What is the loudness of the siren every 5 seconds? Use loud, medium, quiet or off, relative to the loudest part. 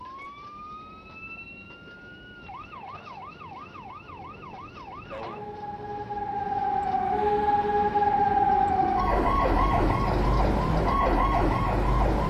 quiet, loud, loud.